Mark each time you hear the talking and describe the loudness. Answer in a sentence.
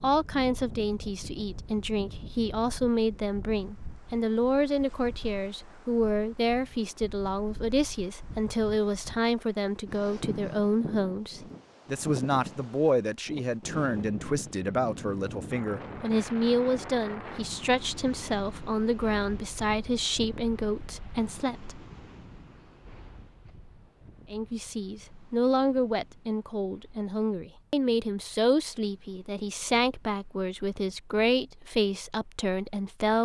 The talking can be heard from 0.0 to 21.8 s, at a steady volume; and from 24.3 to 33.1 s, at a steady volume.